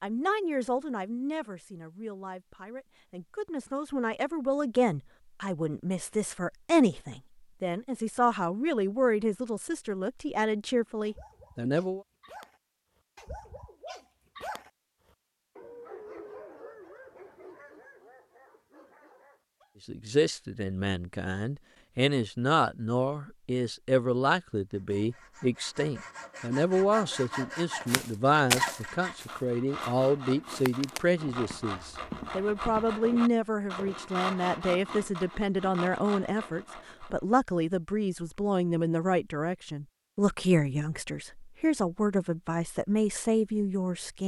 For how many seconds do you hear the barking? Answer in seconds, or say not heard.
8 s.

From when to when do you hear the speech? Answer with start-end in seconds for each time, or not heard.
0.0-12.0, 19.9-44.2.